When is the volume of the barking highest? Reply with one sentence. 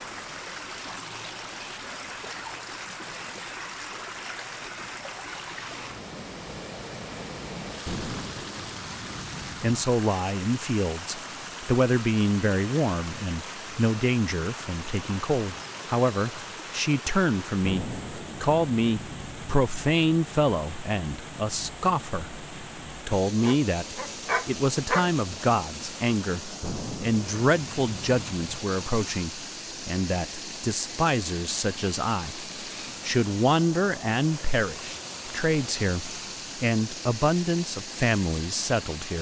The volume of the barking peaks at 25 seconds.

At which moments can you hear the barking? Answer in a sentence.
You can hear the barking from 23.4 to 25.1 s.